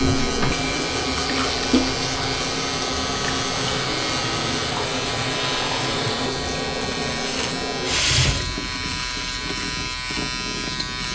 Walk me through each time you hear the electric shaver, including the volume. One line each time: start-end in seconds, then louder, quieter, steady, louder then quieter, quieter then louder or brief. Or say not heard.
0.0-11.1 steady.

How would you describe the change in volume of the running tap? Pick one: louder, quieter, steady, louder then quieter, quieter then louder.
quieter.